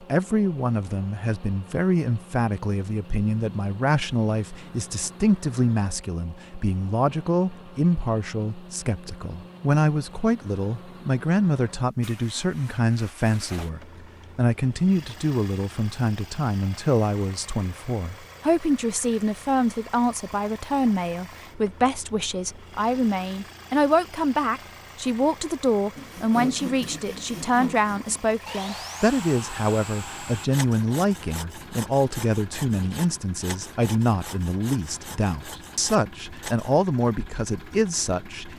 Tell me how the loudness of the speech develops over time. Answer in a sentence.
The volume of the speech stays about the same.